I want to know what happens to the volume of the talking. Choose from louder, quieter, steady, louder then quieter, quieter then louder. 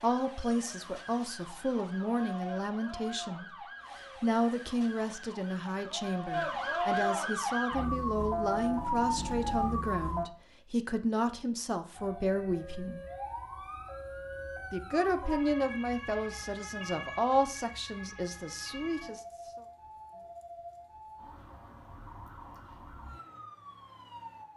steady.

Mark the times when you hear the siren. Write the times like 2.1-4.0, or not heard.
0.0-10.2, 11.9-24.5.